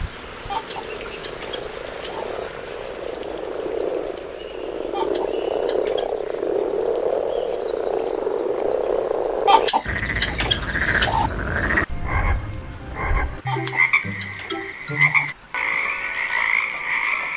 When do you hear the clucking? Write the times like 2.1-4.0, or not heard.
0.5-2.2, 4.9-6.4, 9.4-11.3, 13.4-15.2.